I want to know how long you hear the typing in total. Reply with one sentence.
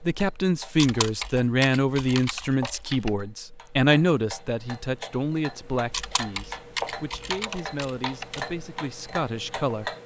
You can hear the typing for 5 seconds altogether.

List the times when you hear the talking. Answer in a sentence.
The talking can be heard from 0.0 to 9.9 s.